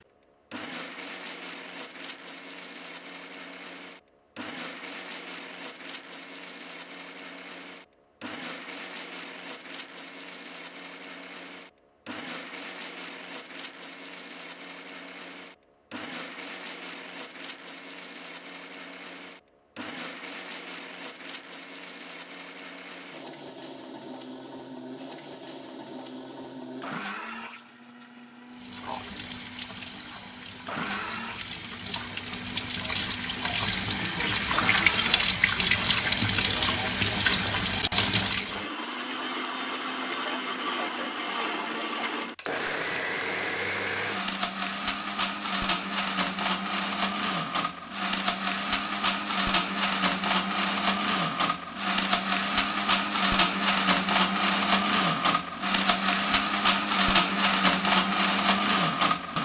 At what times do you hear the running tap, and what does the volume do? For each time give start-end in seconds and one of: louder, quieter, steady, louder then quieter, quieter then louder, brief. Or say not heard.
28.5-38.7 louder.